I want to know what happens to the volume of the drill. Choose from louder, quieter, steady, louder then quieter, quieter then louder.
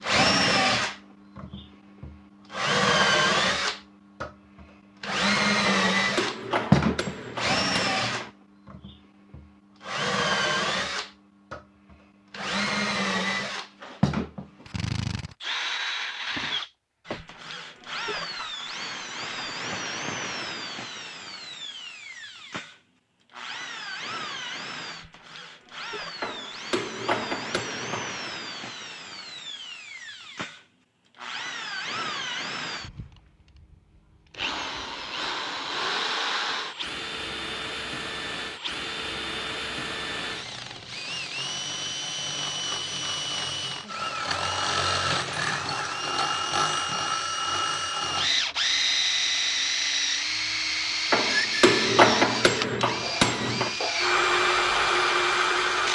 quieter then louder.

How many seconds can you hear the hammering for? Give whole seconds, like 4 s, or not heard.
7 s.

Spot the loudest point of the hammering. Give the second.
52 s.